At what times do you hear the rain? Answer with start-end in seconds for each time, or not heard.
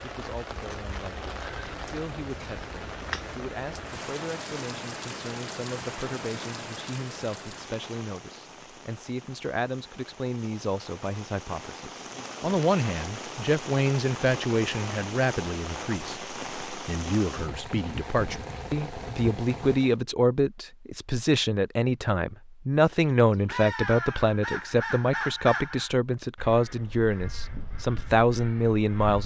0.0-20.0.